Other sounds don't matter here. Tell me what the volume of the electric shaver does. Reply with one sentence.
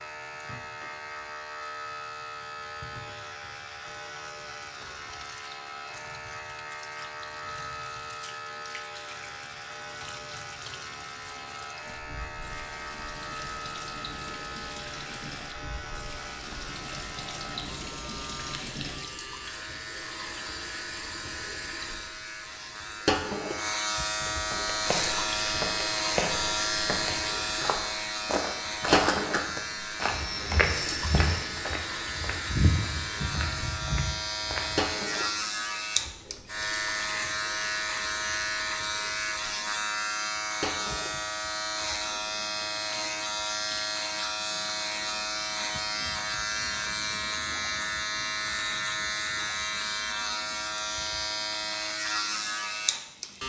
The volume of the electric shaver goes up.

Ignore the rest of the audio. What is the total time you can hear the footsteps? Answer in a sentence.
You can hear the footsteps for 10 seconds altogether.